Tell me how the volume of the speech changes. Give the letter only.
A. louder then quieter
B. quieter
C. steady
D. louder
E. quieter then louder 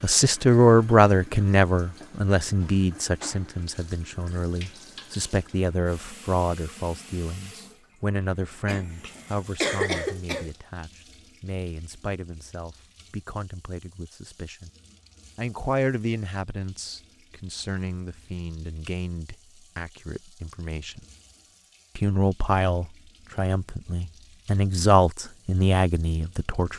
E.